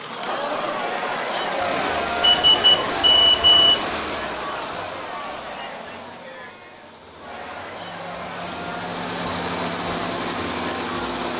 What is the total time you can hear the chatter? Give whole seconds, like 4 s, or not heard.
11 s.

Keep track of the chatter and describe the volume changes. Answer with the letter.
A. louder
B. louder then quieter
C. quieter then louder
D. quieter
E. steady
D.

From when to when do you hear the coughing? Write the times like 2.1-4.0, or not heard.
not heard.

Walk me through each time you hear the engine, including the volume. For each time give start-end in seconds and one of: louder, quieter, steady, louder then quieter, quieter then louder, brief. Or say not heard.
0.0-11.3 quieter then louder.